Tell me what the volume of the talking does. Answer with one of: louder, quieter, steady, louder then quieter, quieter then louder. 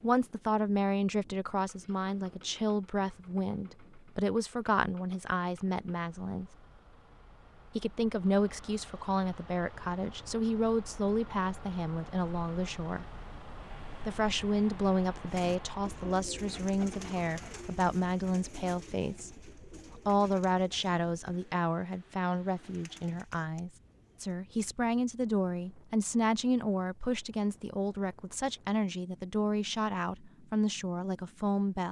steady.